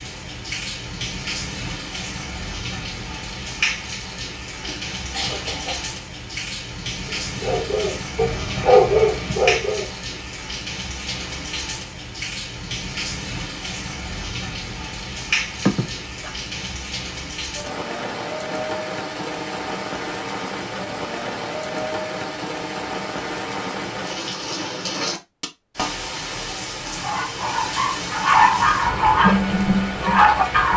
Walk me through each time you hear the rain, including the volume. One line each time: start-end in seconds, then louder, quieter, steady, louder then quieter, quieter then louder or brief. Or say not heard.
0.0-30.7 steady.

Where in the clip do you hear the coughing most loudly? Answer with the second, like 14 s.
16 s.